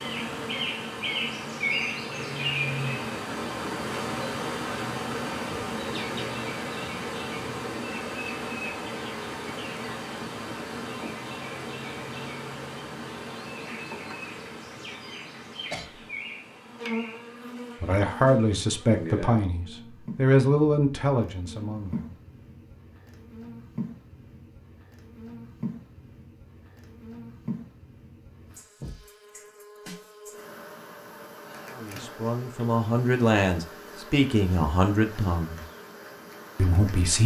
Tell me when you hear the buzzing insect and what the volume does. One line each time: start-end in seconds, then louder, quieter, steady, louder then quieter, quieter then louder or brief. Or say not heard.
0.0-37.2 quieter.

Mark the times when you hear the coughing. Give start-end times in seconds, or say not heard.
15.7-16.1.